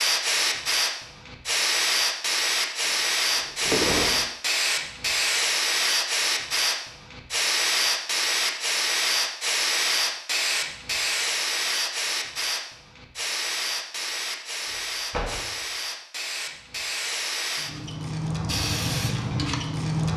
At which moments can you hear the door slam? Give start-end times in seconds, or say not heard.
2.9-4.2, 15.1-15.6.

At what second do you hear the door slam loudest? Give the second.
4 s.